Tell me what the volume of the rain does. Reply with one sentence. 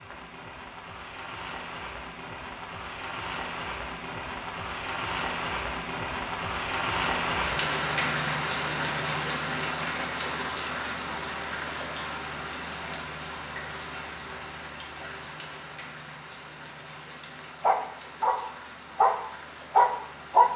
The volume of the rain goes up, then down.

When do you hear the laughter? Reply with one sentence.
You can't hear the laughter here.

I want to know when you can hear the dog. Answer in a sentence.
You can hear the dog from 17.6 to 20.5 s.